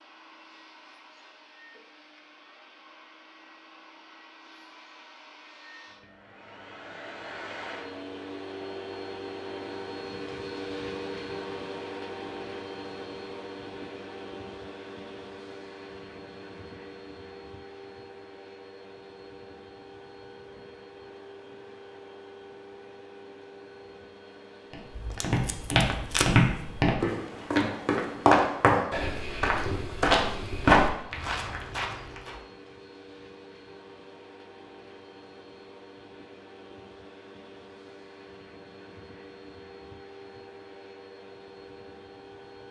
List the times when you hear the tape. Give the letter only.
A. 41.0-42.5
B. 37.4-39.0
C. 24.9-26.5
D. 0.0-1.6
C.